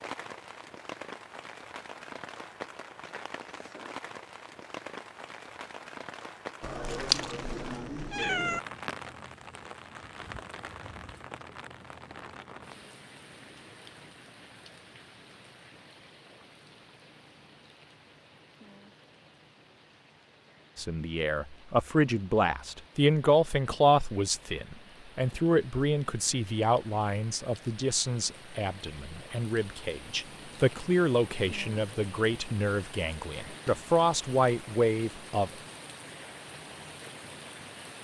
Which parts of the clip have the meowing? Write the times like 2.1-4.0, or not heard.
6.6-8.6.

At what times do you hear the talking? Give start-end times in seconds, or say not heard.
20.8-35.5.